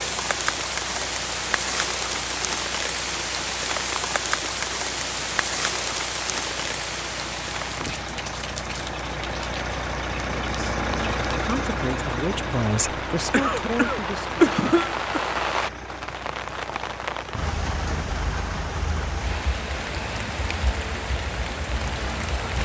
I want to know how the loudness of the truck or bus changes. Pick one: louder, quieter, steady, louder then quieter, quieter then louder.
louder then quieter.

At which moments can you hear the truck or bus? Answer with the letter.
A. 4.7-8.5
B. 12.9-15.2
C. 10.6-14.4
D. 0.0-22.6
D.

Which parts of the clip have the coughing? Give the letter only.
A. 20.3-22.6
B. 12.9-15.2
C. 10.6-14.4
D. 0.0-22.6
B.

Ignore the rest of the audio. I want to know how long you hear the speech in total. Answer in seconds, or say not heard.
4 s.